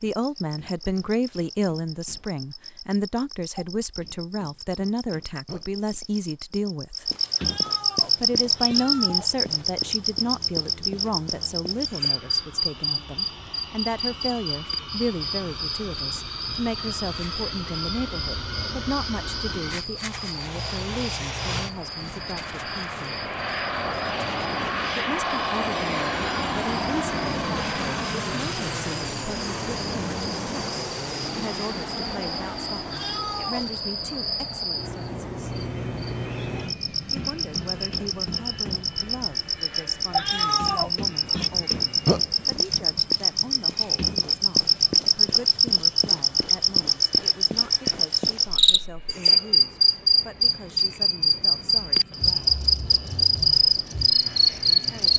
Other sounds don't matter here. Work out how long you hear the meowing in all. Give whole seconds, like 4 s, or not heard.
4 s.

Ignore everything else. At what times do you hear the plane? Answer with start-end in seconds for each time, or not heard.
8.0-55.1.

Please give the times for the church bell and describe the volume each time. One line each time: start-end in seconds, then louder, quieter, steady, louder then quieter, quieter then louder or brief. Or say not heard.
not heard.